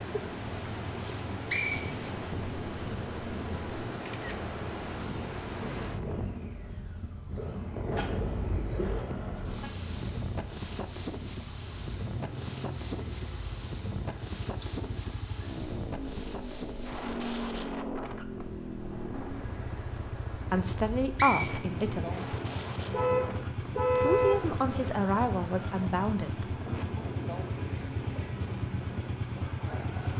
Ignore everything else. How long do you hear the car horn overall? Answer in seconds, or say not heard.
3 s.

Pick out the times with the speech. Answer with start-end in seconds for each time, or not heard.
20.5-22.4, 23.9-26.6.